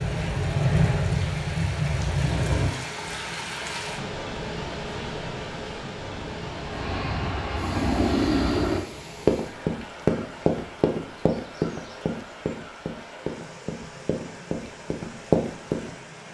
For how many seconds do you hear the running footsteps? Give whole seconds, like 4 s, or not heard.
7 s.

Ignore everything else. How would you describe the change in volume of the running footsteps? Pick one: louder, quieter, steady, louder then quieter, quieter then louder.
quieter then louder.